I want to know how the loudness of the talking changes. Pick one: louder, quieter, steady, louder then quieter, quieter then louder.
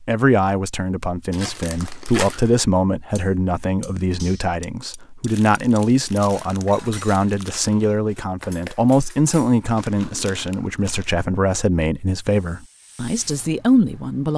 steady.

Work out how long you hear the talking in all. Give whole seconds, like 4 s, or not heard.
14 s.